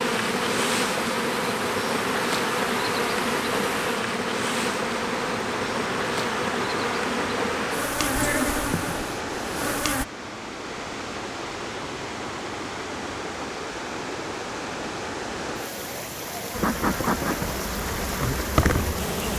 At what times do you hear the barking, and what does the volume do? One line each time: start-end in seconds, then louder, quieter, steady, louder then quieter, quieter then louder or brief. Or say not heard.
not heard.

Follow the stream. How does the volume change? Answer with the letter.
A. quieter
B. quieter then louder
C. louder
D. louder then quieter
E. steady
E.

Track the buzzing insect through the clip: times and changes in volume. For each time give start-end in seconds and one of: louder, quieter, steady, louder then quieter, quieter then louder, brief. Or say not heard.
0.0-10.1 steady
16.5-19.3 brief.